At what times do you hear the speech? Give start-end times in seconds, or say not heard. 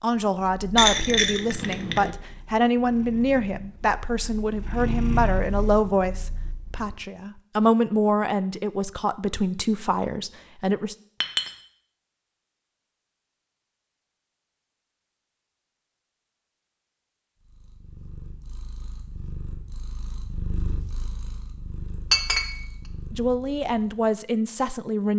0.0-10.9, 23.1-25.1.